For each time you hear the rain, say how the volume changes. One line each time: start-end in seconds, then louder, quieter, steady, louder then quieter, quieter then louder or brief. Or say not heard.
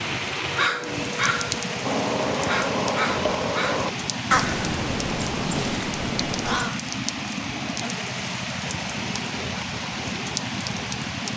0.0-11.3 steady.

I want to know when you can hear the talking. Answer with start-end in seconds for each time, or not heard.
not heard.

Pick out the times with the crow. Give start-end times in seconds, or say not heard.
0.4-6.8.